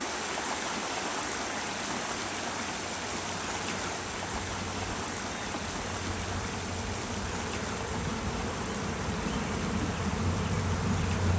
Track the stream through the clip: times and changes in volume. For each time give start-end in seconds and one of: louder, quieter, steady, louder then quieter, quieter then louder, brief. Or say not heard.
0.0-11.3 quieter.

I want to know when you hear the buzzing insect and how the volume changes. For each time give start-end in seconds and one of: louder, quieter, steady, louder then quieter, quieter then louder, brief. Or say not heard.
0.0-11.3 louder.